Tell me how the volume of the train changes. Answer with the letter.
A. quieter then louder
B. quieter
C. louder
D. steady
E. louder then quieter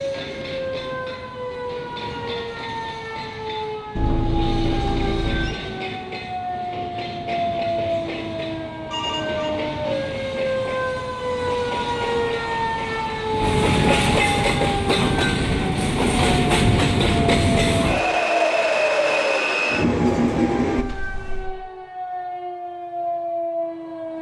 C.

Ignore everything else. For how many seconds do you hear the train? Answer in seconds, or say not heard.
21 s.